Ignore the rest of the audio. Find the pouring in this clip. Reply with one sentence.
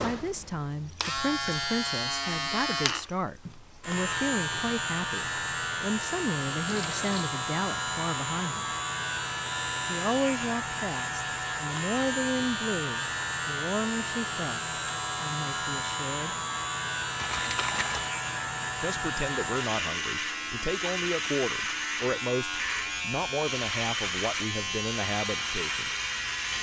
The pouring can be heard from 6.7 to 7.2 s and from 17.1 to 18.1 s.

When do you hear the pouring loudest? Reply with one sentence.
The loudest moment of the pouring is at 18 seconds.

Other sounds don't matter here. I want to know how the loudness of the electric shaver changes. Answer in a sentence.
The loudness of the electric shaver stays about the same.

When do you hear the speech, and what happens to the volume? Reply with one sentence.
You can hear the speech from 0.0 to 8.7 s, at a steady volume; from 9.8 to 16.4 s, getting quieter; and from 18.8 to 25.9 s, at a steady volume.